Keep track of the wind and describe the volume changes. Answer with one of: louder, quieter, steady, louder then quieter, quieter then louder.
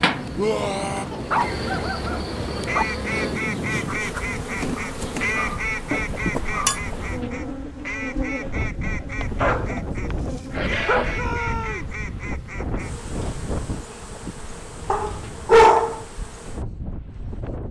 quieter.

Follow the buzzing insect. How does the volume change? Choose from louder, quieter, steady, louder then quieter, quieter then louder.
quieter.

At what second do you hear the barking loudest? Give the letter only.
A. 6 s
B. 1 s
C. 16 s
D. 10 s
C.